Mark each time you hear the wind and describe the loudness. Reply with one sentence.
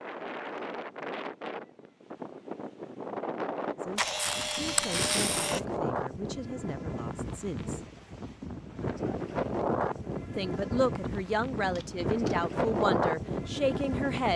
The wind can be heard from 0.0 to 14.3 s, getting louder.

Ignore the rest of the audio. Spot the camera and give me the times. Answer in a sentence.
The camera can be heard from 4.0 to 5.6 s and from 11.8 to 12.4 s.